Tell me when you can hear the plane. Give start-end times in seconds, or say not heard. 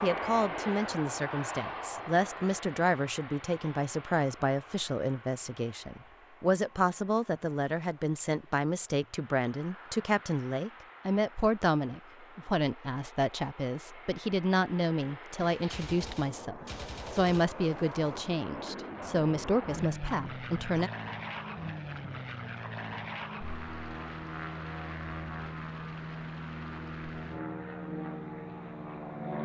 0.0-29.4.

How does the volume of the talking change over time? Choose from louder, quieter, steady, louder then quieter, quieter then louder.
steady.